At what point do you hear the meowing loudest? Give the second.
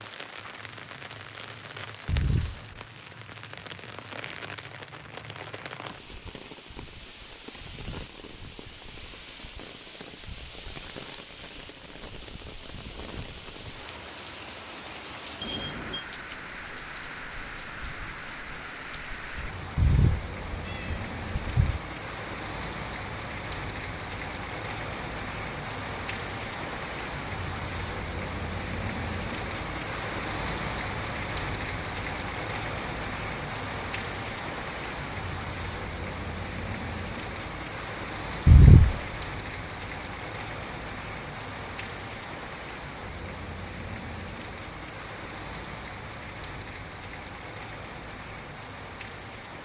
39 s.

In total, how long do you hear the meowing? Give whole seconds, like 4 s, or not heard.
3 s.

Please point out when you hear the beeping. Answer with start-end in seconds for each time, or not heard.
15.4-16.1.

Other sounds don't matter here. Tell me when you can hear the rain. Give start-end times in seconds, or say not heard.
0.0-49.6.